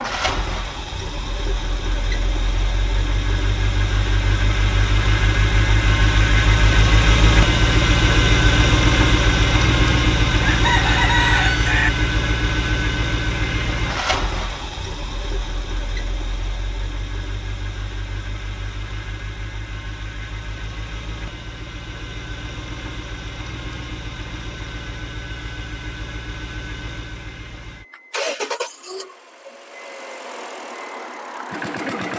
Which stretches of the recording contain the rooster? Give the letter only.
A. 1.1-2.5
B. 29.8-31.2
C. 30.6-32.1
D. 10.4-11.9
D.